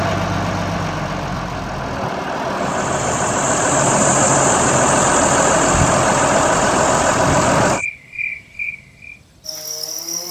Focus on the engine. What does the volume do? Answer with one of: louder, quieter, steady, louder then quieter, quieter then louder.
louder.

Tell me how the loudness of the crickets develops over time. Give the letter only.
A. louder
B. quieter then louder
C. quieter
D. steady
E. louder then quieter
C.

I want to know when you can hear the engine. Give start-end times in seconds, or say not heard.
0.0-7.8.